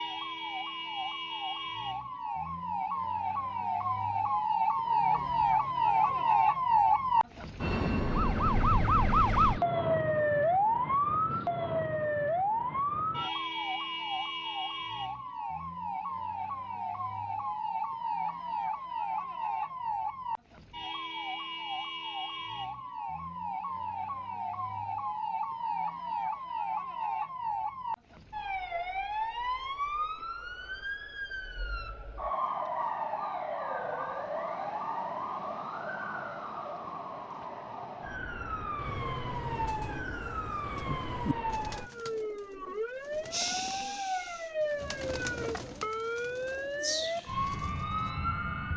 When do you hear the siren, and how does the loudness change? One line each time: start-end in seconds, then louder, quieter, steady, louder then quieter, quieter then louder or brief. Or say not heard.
0.0-48.7 quieter.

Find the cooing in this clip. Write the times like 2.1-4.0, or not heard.
4.8-6.7, 38.7-47.9.